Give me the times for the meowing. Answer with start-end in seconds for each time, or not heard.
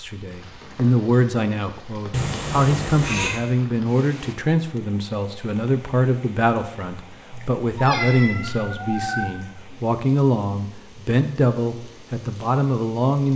2.1-3.4, 7.3-9.3.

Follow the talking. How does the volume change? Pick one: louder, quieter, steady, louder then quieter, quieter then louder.
steady.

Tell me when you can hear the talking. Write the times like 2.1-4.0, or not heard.
0.0-13.3.